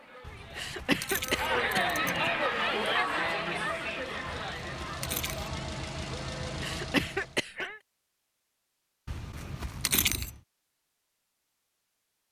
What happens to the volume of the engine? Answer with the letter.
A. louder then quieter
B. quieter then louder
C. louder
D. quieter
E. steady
C.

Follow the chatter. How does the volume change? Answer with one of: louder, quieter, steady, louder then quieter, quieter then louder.
louder then quieter.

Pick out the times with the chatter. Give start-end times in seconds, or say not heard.
0.0-6.8.